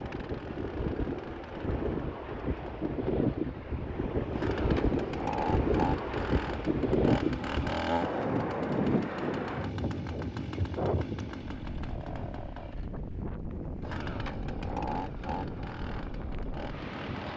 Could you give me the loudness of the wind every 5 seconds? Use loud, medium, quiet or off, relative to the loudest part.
loud, loud, medium, medium.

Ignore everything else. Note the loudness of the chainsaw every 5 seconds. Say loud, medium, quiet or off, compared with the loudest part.
medium, loud, medium, medium.